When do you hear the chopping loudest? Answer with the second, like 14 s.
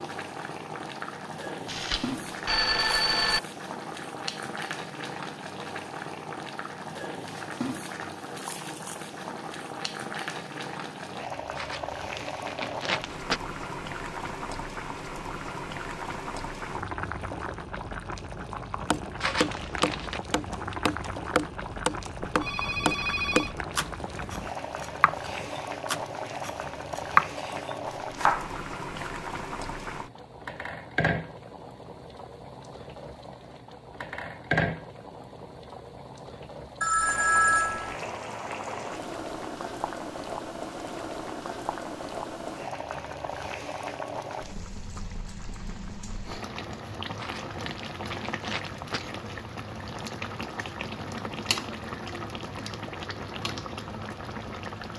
27 s.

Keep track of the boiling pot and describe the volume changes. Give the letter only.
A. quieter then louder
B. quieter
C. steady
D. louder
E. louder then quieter
C.